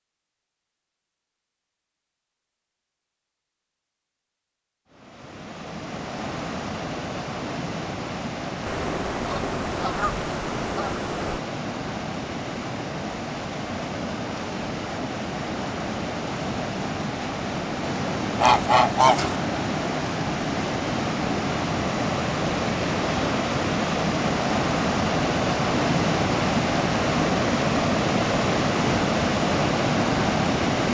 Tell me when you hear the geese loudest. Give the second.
19 s.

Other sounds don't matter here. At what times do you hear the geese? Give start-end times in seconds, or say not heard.
8.7-11.4, 18.4-19.4.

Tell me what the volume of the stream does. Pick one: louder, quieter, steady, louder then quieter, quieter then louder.
louder.